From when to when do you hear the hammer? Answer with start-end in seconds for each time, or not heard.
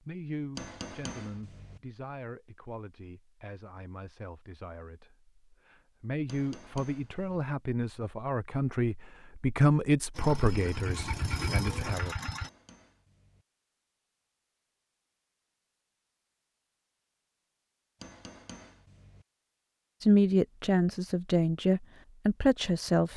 0.6-1.8, 6.2-7.5, 12.3-13.4, 18.0-19.2.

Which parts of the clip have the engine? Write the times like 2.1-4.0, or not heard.
10.2-12.5.